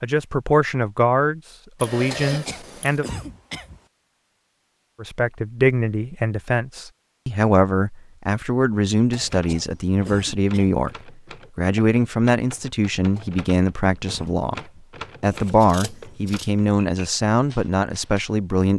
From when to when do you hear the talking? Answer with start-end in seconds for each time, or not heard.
0.0-3.0, 5.0-14.6, 15.2-18.7.